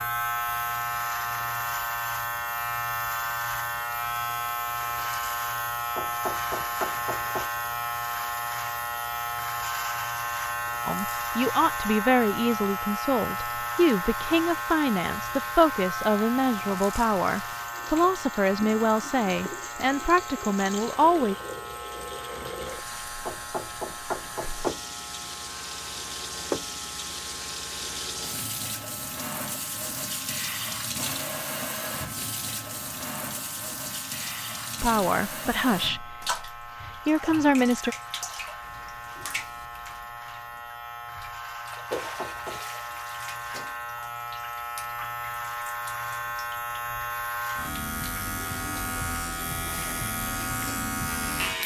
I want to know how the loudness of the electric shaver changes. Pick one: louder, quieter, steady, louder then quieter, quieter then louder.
quieter then louder.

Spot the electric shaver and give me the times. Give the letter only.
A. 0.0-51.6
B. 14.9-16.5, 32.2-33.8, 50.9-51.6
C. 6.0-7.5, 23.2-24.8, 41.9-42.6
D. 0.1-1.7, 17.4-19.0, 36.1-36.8
A.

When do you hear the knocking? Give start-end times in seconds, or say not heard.
6.0-7.5, 23.2-24.8, 41.9-42.6.